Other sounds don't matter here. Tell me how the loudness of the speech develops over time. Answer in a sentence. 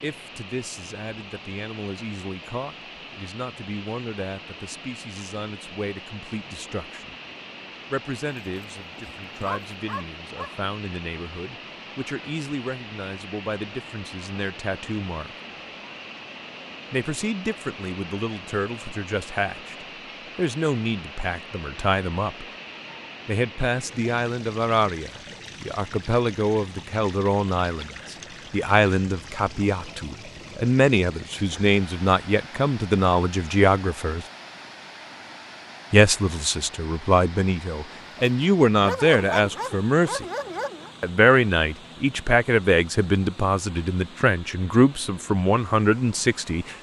The loudness of the speech goes up.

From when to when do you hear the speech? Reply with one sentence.
The speech can be heard from 0.0 to 7.2 s, from 7.9 to 15.3 s, from 16.9 to 22.4 s, from 23.2 to 34.2 s, from 35.9 to 40.2 s and from 41.0 to 46.7 s.